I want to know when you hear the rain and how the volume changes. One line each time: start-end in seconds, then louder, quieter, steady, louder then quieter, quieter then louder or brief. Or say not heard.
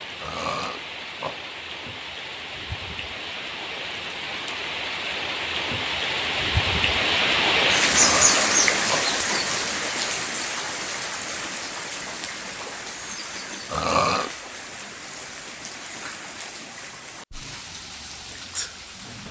0.0-19.2 louder then quieter.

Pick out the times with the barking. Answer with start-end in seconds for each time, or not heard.
not heard.